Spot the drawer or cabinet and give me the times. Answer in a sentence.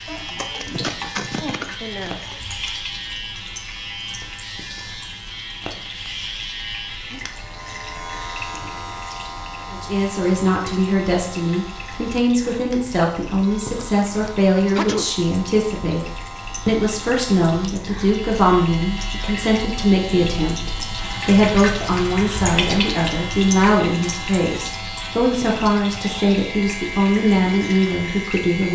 The drawer or cabinet can't be heard in this clip.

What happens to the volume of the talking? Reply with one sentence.
The volume of the talking stays about the same.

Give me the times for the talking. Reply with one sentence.
You can hear the talking from 9.7 to 28.7 s.